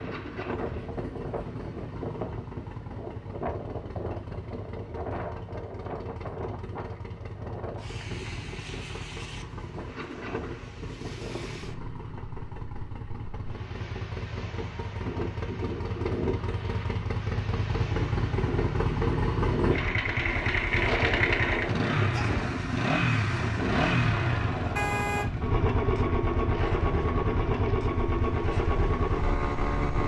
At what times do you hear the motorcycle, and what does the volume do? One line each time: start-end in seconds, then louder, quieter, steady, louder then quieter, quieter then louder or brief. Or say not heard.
0.0-30.0 louder.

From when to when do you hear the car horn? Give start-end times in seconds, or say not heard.
24.8-25.2.